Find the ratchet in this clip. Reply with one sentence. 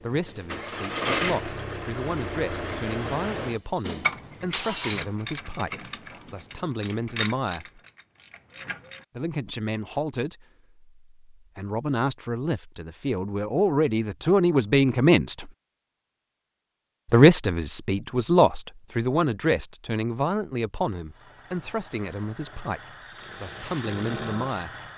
You can hear the ratchet from 4.0 to 9.0 s.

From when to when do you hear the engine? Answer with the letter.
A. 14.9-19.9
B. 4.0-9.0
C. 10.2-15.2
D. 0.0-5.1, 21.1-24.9
D.